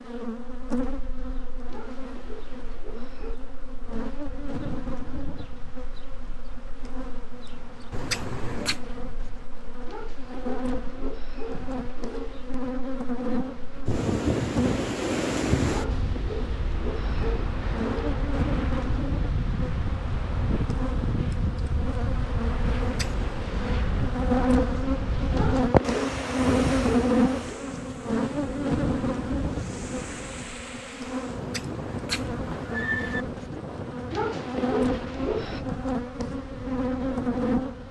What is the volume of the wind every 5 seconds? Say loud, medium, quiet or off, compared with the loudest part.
quiet, quiet, loud, loud, loud, loud, medium, medium.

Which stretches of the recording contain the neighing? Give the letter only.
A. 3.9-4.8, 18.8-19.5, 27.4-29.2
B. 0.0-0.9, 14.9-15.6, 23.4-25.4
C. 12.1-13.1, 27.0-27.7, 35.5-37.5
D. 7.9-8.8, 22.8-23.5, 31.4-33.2
D.